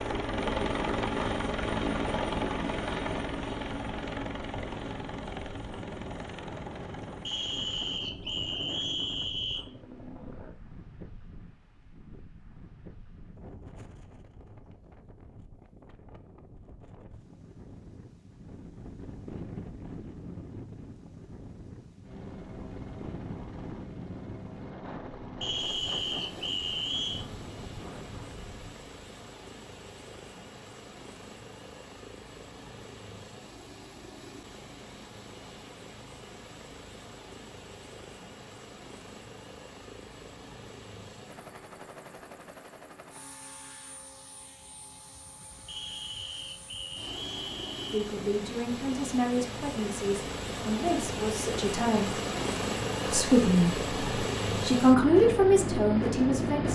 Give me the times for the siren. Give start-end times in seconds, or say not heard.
not heard.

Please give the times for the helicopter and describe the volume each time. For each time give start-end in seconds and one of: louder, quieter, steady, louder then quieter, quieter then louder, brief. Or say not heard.
0.0-10.6 quieter
22.0-56.7 louder.